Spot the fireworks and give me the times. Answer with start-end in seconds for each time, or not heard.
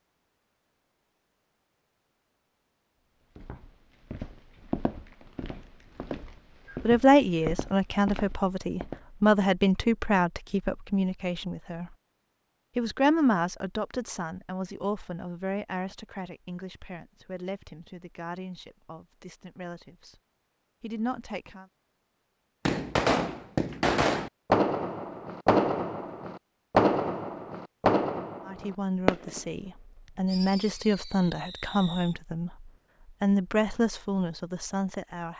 22.6-32.1.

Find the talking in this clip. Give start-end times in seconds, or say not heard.
6.8-11.9, 12.8-20.1, 20.8-21.6, 28.4-35.3.